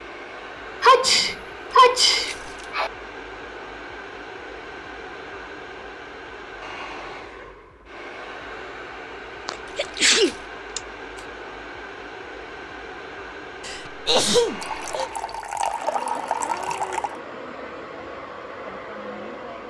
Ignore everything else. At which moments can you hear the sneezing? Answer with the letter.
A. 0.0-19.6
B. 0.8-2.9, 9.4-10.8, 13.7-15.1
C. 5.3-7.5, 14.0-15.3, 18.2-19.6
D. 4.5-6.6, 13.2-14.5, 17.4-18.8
B.